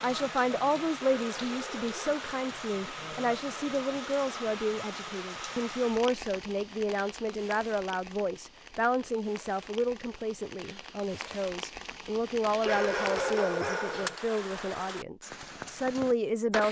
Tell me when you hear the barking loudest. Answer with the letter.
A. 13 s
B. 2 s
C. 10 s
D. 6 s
A.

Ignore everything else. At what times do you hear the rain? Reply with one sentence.
The rain can be heard from 0.0 to 16.6 s.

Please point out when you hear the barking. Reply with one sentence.
The barking can be heard from 0.9 to 2.5 s and from 12.6 to 14.2 s.